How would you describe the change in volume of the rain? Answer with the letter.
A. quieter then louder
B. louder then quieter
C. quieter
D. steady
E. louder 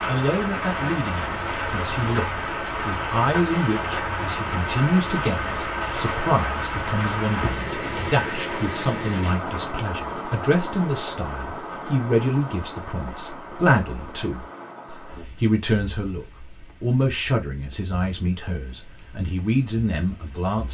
C.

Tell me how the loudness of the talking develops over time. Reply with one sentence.
The volume of the talking stays about the same.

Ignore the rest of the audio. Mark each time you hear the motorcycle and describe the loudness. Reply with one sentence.
The motorcycle can't be heard in this clip.